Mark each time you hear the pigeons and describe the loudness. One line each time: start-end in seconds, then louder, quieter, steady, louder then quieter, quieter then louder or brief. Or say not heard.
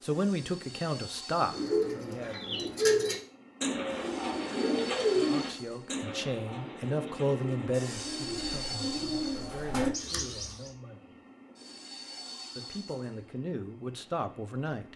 1.4-10.7 quieter then louder.